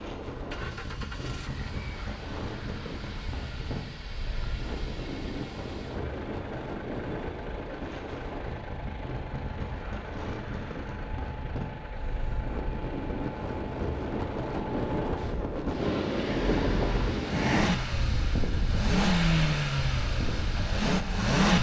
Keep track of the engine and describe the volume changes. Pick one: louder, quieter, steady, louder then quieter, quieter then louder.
louder.